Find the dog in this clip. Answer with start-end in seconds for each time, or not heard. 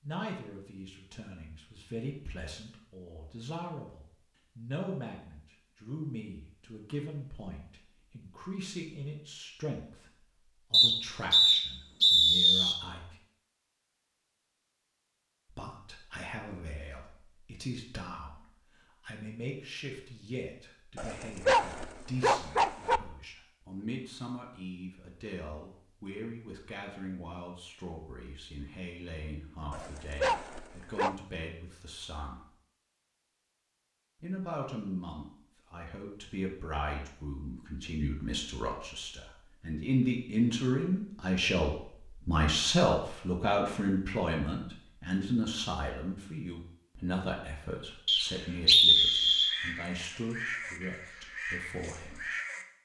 20.9-23.0, 29.7-31.1.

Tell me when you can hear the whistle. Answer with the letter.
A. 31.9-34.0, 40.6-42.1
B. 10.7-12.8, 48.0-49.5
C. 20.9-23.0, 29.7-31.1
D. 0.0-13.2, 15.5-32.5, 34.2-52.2
B.